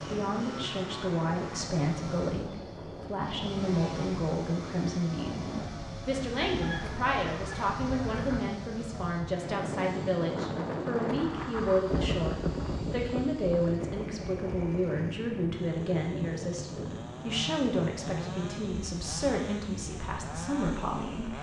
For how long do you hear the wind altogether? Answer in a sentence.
The wind can be heard for 21 seconds in total.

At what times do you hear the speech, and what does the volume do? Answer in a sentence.
You can hear the speech from 0.1 to 21.3 s, at a steady volume.